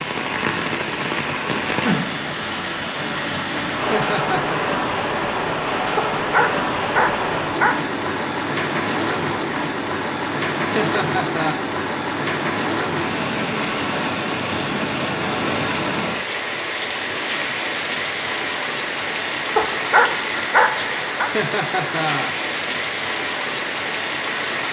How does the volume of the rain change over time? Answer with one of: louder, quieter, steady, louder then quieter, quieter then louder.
steady.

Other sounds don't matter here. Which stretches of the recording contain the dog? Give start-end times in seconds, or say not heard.
6.0-7.8, 19.6-21.3.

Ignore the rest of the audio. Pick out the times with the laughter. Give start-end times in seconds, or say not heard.
3.9-4.6, 10.8-11.6, 21.3-22.4.